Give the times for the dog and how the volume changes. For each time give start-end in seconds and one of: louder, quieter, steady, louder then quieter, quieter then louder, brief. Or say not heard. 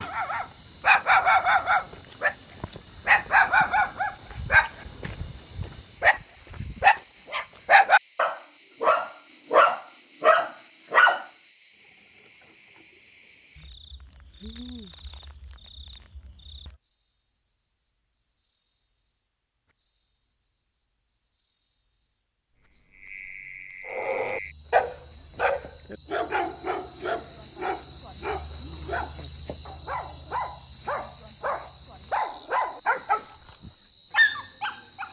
0.0-11.2 quieter then louder
23.9-35.0 quieter then louder.